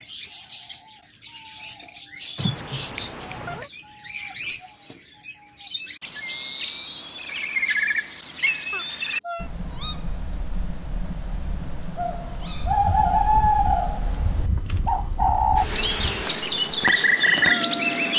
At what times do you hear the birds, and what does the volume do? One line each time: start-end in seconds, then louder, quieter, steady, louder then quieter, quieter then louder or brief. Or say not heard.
0.0-18.1 louder.